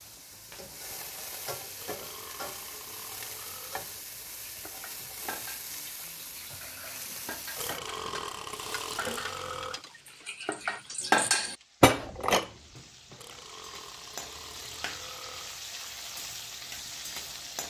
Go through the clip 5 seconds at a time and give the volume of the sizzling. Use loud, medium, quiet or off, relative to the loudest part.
loud, loud, medium, loud.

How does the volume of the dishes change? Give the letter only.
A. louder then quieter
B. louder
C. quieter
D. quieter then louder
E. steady
B.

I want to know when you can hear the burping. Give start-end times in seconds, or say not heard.
1.8-3.9, 7.5-9.8, 13.2-15.6.